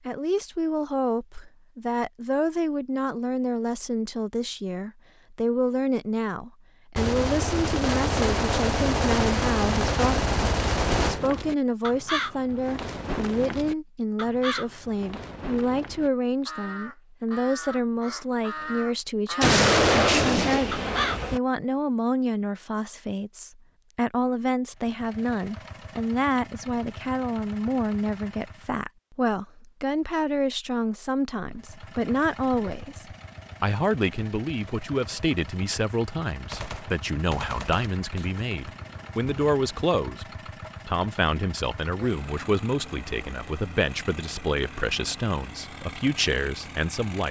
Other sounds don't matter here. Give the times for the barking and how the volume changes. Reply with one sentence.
The barking can't be heard in this clip.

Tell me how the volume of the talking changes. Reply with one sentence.
The volume of the talking stays about the same.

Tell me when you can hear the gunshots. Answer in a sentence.
You can hear the gunshots from 7.0 to 11.2 s, from 19.4 to 21.4 s and from 36.5 to 39.9 s.